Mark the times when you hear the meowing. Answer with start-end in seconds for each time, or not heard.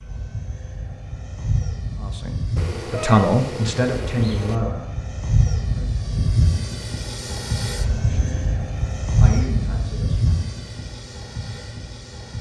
2.5-4.5, 8.1-8.7.